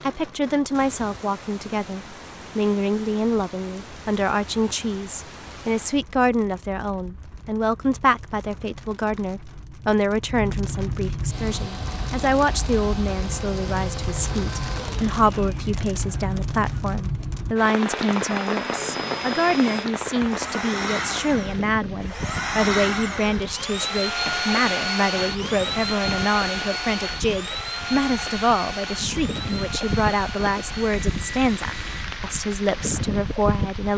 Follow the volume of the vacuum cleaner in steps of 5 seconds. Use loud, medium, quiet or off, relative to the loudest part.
off, off, medium, medium, loud, loud, medium.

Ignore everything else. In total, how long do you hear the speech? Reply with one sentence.
You can hear the speech for 34 seconds altogether.